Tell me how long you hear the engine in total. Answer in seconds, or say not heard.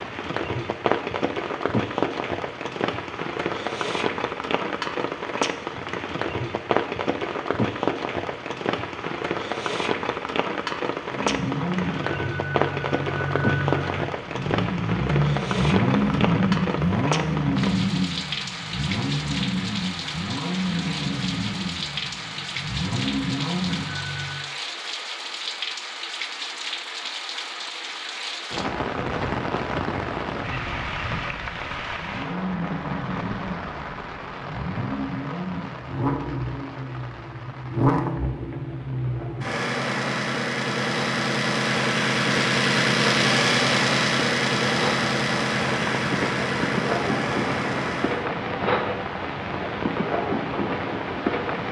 30 s.